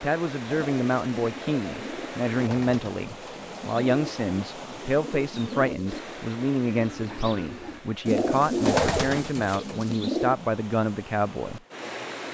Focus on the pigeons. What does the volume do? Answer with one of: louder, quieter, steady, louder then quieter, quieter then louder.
louder.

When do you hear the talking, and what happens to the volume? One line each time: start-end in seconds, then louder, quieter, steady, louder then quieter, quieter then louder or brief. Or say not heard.
0.0-11.6 steady.